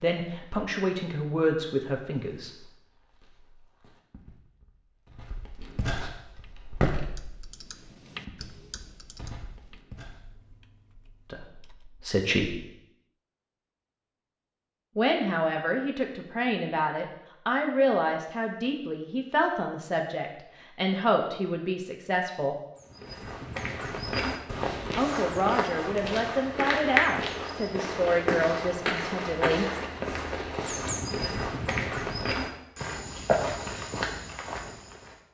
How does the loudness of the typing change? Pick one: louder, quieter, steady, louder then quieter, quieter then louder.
louder then quieter.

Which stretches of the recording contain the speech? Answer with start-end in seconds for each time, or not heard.
0.0-2.5, 11.3-12.7, 14.9-22.6, 24.9-29.7.